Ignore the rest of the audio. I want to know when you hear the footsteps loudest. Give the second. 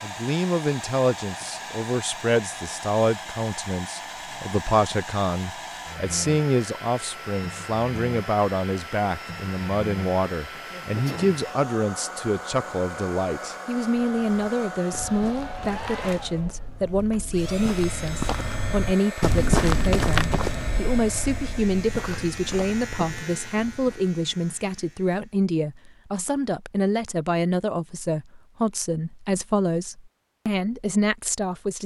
20 s.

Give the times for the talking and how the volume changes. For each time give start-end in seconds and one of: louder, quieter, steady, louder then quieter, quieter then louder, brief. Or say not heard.
0.0-31.8 steady.